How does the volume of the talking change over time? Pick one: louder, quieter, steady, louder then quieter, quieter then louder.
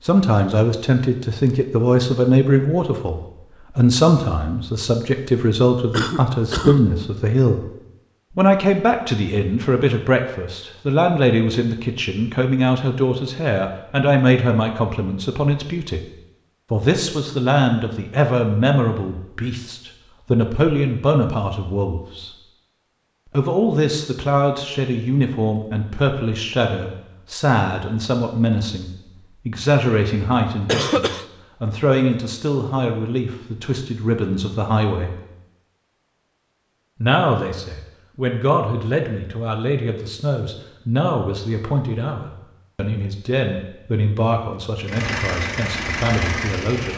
quieter.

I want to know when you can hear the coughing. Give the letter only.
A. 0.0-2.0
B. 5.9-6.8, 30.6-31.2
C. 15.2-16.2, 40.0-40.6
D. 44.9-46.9
B.